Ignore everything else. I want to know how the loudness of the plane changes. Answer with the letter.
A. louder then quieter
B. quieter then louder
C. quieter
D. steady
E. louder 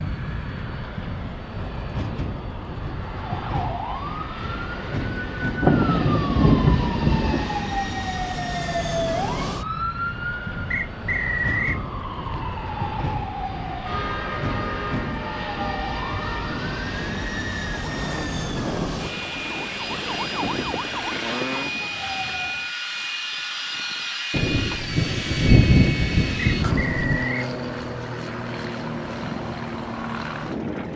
D.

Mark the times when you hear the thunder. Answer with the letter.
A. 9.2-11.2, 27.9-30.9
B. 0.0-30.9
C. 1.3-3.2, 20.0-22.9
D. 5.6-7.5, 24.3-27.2
D.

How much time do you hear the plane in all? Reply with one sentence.
You can hear the plane for 31 seconds altogether.